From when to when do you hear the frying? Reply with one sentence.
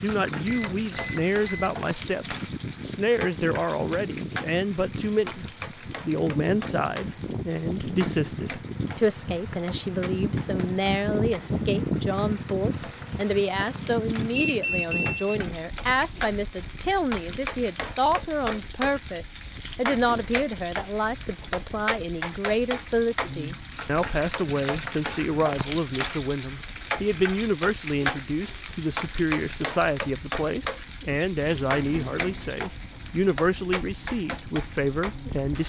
The frying can be heard from 0.0 to 35.6 s.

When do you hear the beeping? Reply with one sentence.
The beeping can be heard from 0.5 to 1.8 s, from 14.3 to 15.4 s and from 31.7 to 32.5 s.